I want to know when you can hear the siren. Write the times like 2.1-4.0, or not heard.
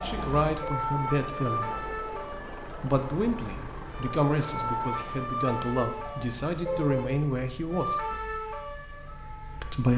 0.0-9.9.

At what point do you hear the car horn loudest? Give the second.
7 s.